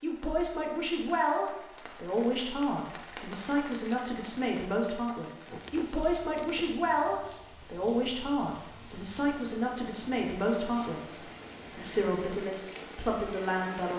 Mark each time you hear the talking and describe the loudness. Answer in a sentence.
You can hear the talking from 0.0 to 13.9 s, at a steady volume.